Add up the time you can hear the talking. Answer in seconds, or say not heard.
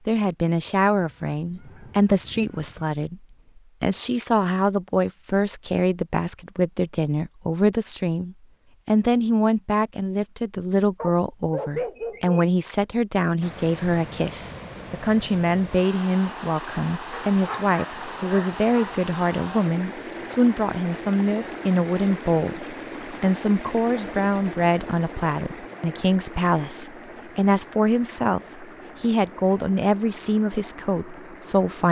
31 s.